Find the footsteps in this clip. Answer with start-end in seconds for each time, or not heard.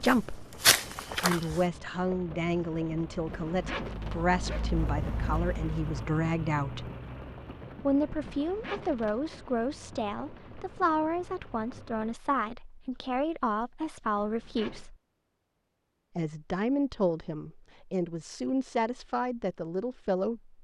0.0-1.6.